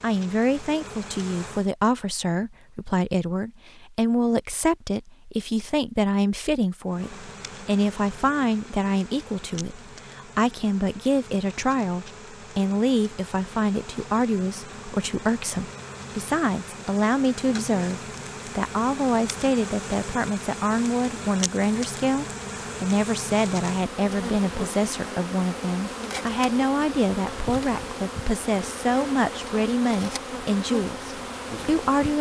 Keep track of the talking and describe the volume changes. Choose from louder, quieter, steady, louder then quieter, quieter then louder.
steady.